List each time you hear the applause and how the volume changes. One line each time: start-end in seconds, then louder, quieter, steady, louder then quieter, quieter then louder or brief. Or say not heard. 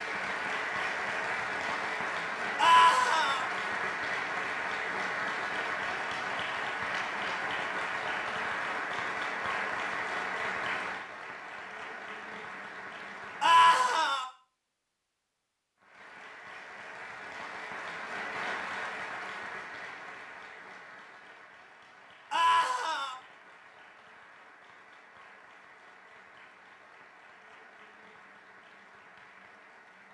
0.0-14.2 quieter
15.8-30.0 quieter.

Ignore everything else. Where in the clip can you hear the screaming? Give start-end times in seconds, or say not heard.
2.5-3.5, 13.4-14.2, 22.3-23.1.